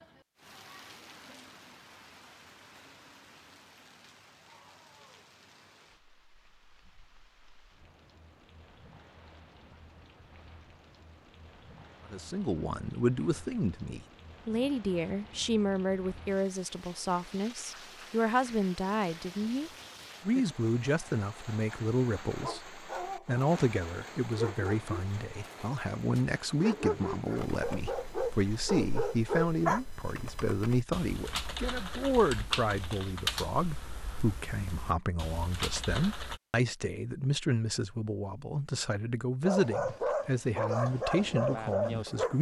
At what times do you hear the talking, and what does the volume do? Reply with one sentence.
You can hear the talking from 12.1 to 42.3 s, at a steady volume.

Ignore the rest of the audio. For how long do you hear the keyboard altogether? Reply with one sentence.
The keyboard can be heard for 9 seconds in total.